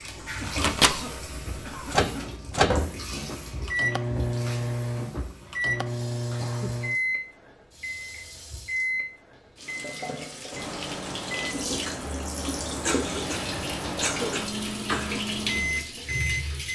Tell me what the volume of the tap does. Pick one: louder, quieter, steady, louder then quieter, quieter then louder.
quieter then louder.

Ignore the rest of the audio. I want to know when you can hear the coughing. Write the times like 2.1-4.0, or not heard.
0.3-2.4, 6.3-6.8, 12.8-15.2.